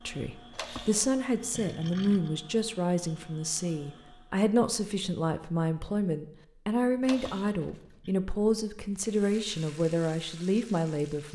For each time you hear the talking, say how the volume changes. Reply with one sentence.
You can hear the talking from 0.1 to 11.3 s, at a steady volume.